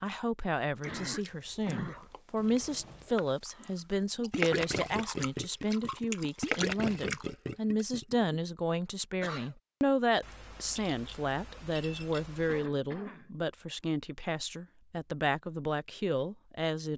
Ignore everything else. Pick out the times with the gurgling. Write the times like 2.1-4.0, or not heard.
4.2-8.3.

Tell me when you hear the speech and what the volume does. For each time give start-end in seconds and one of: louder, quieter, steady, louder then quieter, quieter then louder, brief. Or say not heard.
0.0-16.9 steady.